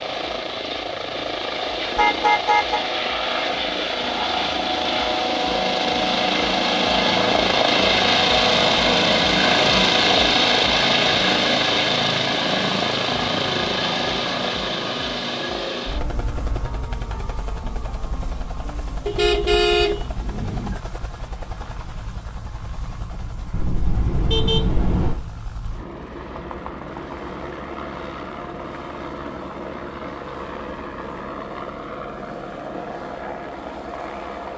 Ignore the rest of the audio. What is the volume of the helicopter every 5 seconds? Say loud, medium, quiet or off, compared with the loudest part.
medium, loud, loud, quiet, quiet, quiet, quiet.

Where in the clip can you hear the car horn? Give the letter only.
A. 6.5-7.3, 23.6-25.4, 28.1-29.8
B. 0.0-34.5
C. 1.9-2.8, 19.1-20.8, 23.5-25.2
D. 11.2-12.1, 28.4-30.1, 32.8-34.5
C.